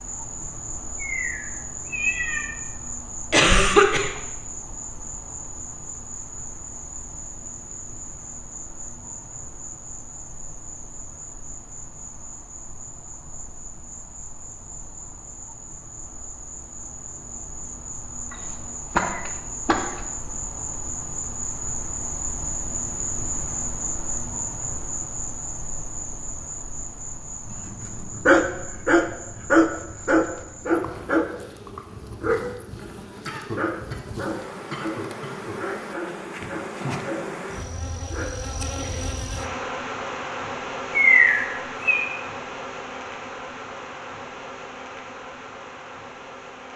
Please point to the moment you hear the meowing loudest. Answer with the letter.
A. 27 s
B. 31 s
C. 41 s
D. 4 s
C.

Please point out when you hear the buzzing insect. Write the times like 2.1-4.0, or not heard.
0.0-46.7.